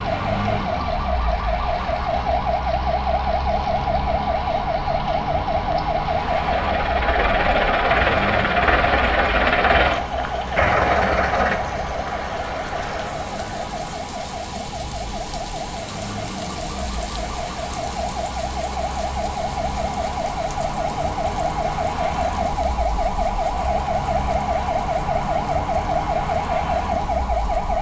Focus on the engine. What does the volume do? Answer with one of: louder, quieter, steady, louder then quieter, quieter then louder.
quieter.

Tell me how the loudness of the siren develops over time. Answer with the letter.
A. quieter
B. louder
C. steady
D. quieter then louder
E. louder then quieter
D.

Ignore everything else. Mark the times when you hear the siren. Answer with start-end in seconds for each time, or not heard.
0.0-27.7.